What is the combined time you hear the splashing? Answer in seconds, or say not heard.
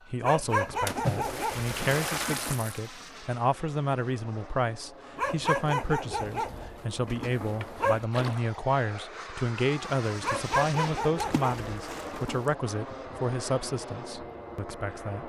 4 s.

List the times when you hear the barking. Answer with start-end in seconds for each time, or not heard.
0.2-2.7, 5.2-8.1, 10.2-12.4.